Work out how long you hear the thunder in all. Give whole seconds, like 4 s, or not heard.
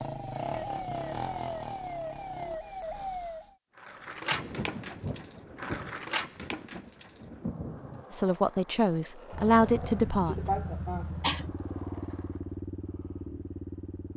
4 s.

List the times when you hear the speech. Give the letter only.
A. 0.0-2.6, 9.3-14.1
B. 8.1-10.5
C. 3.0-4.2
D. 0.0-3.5
B.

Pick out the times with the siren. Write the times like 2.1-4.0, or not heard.
0.0-3.5.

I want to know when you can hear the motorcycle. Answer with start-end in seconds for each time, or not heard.
0.0-2.6, 9.3-14.1.